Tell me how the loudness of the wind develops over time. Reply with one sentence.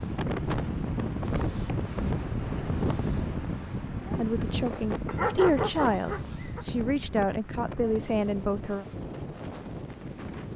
The loudness of the wind goes down.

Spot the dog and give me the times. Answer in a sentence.
The dog can be heard from 5.0 to 6.7 s.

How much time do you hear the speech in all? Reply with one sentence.
The speech can be heard for 5 seconds in total.